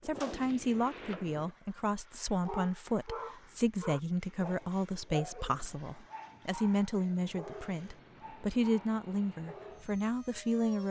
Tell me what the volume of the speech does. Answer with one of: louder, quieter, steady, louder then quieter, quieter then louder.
steady.